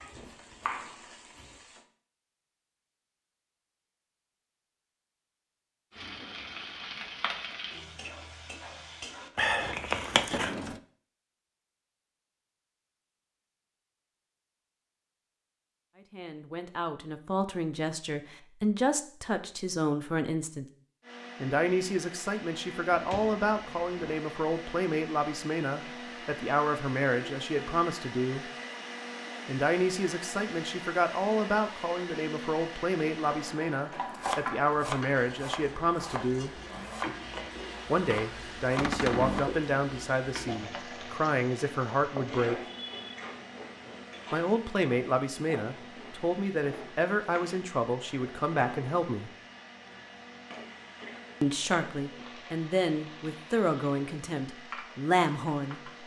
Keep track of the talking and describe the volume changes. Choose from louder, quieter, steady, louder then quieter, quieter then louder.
steady.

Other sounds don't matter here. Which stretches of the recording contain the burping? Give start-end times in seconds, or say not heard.
9.3-10.6.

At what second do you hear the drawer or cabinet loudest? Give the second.
39 s.